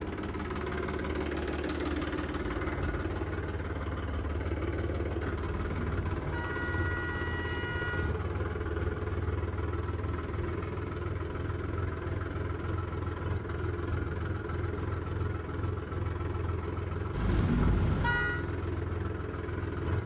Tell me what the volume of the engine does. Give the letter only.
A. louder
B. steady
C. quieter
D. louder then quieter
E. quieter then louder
B.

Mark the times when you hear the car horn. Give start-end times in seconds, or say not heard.
5.4-8.2, 17.1-18.4.